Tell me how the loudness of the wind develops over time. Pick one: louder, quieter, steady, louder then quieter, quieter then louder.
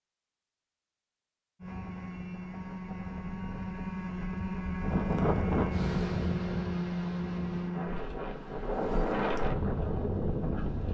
quieter then louder.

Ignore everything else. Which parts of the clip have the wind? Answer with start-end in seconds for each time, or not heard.
4.8-10.8.